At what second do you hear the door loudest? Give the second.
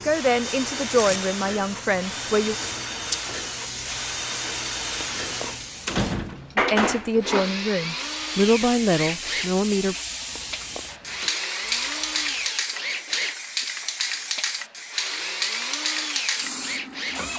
6 s.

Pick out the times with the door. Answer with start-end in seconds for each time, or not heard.
5.2-6.5, 10.3-11.3.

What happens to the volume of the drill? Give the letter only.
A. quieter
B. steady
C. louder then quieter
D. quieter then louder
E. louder
B.